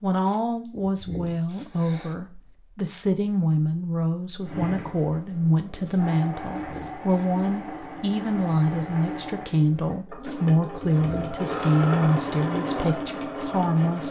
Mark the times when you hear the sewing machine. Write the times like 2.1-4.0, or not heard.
4.4-14.0.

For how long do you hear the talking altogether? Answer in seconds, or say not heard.
14 s.